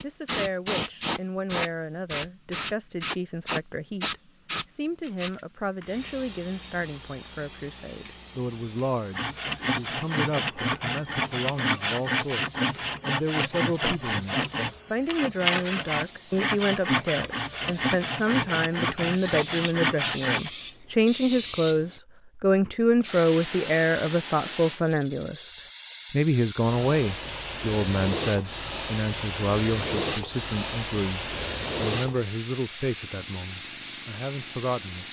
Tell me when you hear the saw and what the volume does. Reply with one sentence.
The saw can be heard from 9.1 to 20.5 s, at a steady volume.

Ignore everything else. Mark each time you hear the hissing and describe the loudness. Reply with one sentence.
The hissing can be heard from 0.0 to 35.0 s, getting quieter then louder.